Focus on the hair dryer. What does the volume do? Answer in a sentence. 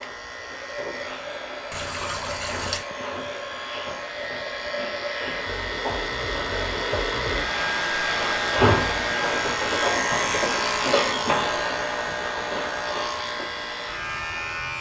The loudness of the hair dryer goes up, then down.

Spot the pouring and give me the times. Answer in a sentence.
You can hear the pouring from 1.7 to 2.9 s.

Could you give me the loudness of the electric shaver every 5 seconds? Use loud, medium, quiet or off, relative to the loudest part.
medium, loud, loud.